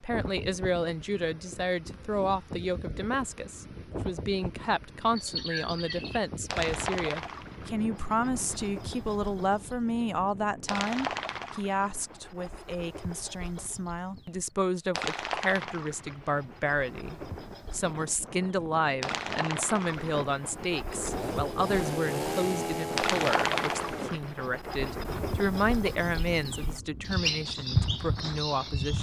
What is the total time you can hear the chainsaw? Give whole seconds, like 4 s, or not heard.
3 s.